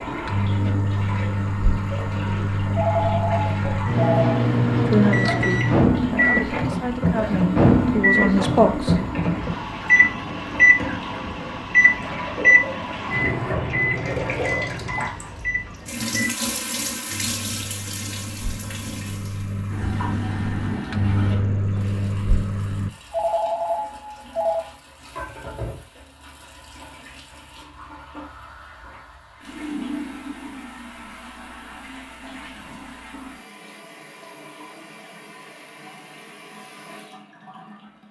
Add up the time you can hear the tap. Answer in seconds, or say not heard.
38 s.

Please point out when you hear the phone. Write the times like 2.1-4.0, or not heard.
2.7-4.5, 23.1-24.6.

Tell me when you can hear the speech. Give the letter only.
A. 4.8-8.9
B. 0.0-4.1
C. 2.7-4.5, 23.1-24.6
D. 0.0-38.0
A.